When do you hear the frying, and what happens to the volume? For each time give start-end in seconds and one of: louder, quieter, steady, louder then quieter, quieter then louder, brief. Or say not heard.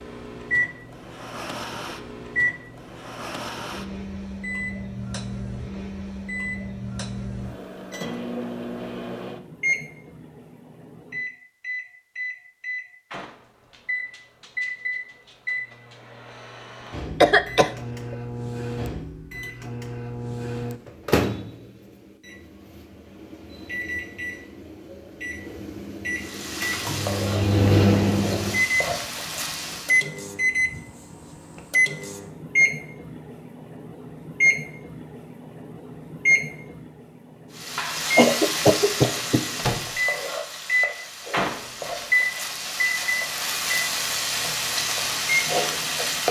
26.1-30.1 steady
37.5-46.2 quieter then louder.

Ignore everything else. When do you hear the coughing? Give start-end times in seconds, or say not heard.
17.2-18.1, 38.1-39.5.